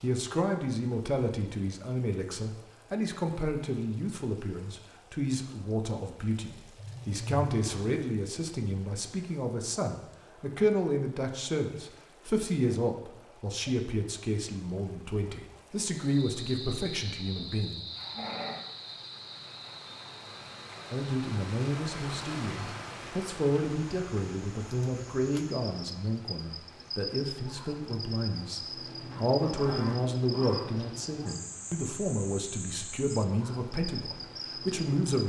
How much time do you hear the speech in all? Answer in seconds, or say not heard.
32 s.